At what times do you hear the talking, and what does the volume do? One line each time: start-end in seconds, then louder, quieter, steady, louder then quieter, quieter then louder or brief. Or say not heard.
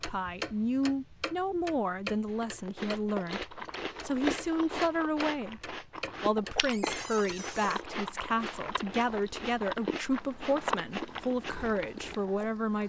0.0-12.8 steady.